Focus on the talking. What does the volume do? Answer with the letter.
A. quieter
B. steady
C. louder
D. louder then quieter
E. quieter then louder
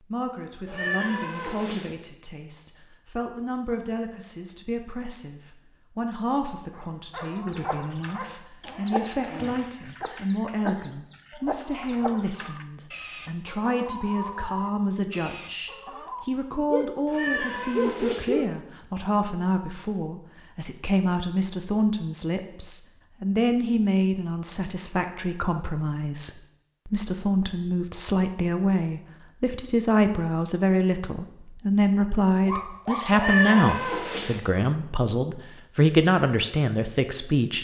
C.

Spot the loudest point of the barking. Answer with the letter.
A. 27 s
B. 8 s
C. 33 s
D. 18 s
D.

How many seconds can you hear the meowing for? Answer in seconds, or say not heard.
4 s.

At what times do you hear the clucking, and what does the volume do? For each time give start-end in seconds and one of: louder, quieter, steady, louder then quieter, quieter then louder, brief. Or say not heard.
7.2-16.2 steady.